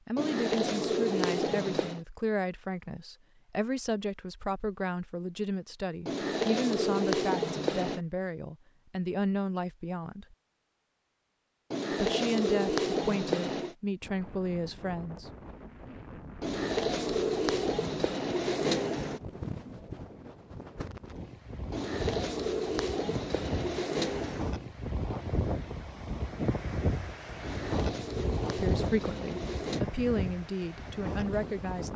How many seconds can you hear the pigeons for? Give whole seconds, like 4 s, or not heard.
14 s.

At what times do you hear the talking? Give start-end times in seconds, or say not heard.
0.1-10.3, 11.9-15.3, 28.6-31.9.